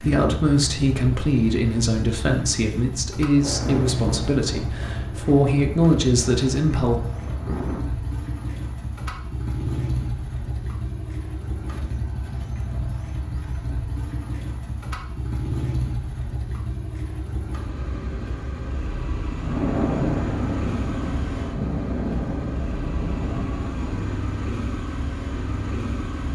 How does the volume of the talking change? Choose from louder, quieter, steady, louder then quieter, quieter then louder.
quieter then louder.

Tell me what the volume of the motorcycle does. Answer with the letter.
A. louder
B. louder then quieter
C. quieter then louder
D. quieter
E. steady
E.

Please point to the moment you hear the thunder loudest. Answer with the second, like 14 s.
20 s.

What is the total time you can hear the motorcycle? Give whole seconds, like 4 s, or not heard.
26 s.